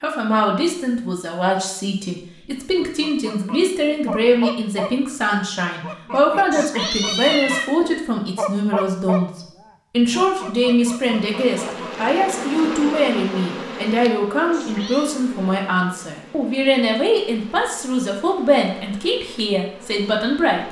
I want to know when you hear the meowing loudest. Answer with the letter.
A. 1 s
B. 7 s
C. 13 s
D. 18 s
B.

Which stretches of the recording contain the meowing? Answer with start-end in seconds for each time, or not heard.
6.5-7.7, 14.5-15.2.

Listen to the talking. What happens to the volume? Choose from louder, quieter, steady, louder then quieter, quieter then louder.
steady.